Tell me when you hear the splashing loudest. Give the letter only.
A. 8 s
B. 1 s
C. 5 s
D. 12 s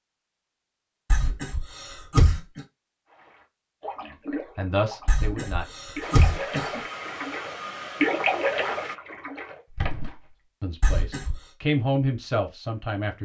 A.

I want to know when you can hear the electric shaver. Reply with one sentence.
You can't hear the electric shaver here.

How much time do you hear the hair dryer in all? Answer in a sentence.
You can hear the hair dryer for 3 seconds altogether.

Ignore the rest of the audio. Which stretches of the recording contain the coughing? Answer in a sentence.
The coughing can be heard from 1.1 to 2.6 s, from 5.0 to 6.8 s and from 10.8 to 11.4 s.